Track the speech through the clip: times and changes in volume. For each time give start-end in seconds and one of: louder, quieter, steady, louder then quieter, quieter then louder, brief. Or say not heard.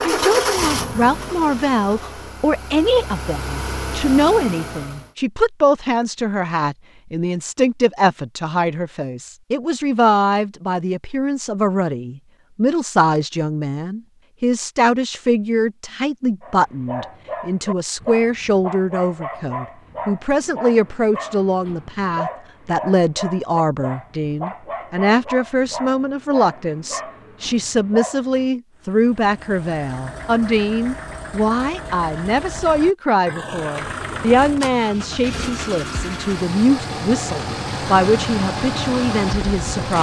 0.0-39.9 steady.